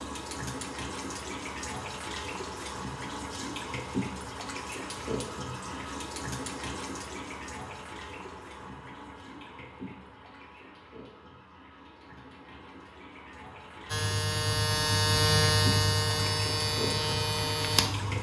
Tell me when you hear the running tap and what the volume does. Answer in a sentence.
You can hear the running tap from 0.0 to 18.1 s, getting quieter then louder.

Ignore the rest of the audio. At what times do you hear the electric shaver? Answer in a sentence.
You can hear the electric shaver from 13.8 to 18.1 s.